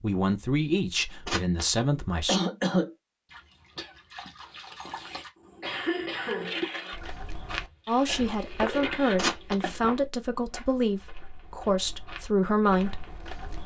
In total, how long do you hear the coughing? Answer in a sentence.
You can hear the coughing for 4 seconds altogether.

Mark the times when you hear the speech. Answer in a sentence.
You can hear the speech from 0.0 to 2.4 s and from 7.8 to 13.1 s.